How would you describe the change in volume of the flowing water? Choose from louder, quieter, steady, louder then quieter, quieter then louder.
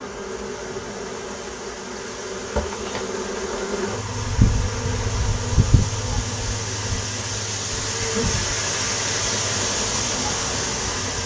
louder.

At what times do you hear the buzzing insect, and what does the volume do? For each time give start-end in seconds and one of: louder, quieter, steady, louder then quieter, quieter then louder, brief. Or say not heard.
0.0-11.2 louder then quieter.